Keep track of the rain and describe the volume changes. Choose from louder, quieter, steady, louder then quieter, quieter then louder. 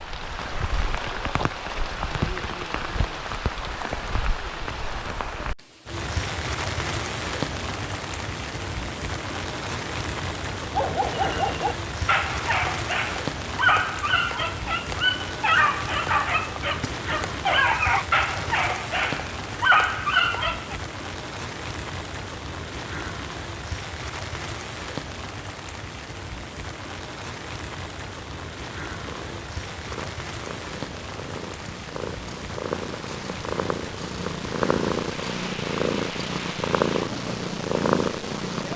quieter.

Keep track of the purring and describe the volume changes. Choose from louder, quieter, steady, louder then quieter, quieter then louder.
louder.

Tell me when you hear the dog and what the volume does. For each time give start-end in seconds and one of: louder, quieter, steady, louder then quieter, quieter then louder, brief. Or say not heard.
10.7-20.8 steady.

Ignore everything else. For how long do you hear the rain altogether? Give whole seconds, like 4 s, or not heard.
39 s.